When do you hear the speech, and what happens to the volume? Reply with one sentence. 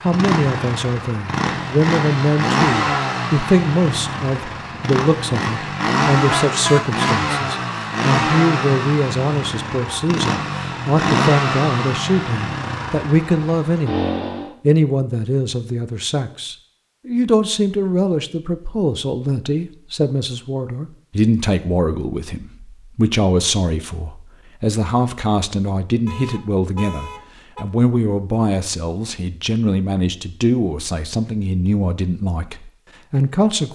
The speech can be heard from 0.0 to 33.7 s, at a steady volume.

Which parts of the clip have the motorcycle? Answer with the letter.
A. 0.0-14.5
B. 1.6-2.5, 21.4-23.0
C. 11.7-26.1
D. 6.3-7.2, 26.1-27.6
A.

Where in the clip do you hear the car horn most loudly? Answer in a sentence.
The loudest moment of the car horn is at 7 seconds.